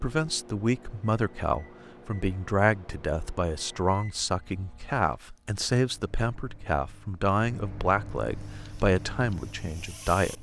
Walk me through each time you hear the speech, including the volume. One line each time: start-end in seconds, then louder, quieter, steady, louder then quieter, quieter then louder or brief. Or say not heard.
0.0-10.3 steady.